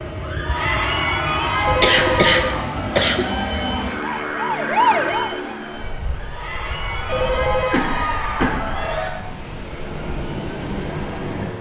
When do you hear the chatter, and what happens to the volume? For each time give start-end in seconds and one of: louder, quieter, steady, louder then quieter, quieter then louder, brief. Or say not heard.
0.1-9.1 quieter then louder.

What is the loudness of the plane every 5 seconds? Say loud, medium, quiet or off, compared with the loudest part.
loud, medium, loud.